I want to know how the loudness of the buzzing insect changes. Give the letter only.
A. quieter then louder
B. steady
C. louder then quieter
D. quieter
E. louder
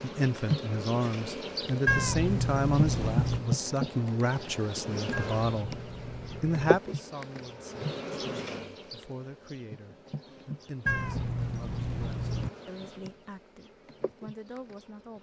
D.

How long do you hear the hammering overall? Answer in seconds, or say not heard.
not heard.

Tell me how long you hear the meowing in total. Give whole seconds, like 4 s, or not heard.
5 s.